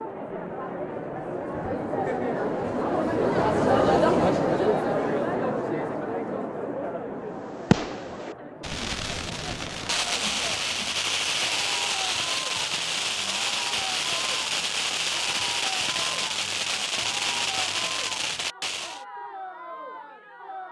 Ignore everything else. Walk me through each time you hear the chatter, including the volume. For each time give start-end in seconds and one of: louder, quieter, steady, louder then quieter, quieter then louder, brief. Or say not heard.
0.0-20.6 quieter.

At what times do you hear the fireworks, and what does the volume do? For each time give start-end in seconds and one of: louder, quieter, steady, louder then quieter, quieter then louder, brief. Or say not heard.
7.3-19.1 steady.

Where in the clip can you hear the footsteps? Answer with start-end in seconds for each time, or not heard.
not heard.